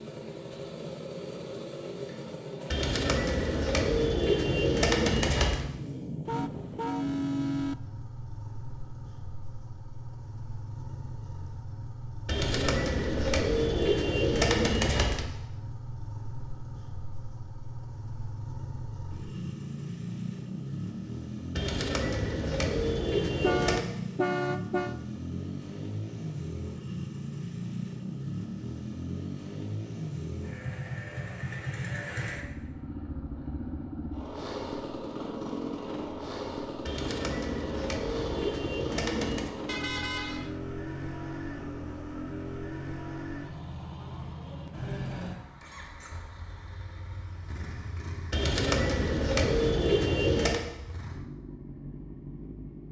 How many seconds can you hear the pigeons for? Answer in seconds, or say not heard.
13 s.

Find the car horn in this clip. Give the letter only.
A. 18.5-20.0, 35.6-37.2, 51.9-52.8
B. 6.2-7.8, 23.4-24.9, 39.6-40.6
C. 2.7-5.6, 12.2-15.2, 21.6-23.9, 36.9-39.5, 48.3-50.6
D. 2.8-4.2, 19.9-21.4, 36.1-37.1
B.